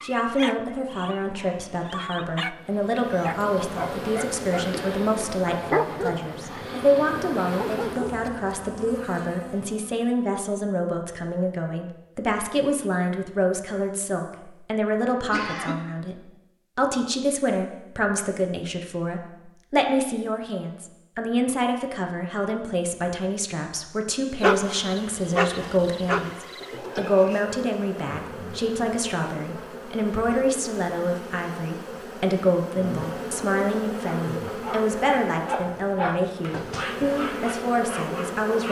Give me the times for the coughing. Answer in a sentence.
You can hear the coughing from 15.2 to 15.8 s.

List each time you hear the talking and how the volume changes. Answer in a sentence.
You can hear the talking from 0.0 to 38.6 s, at a steady volume.